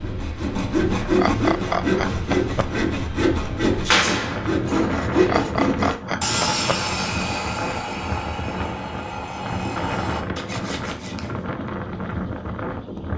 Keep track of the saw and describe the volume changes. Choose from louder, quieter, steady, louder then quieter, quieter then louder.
quieter.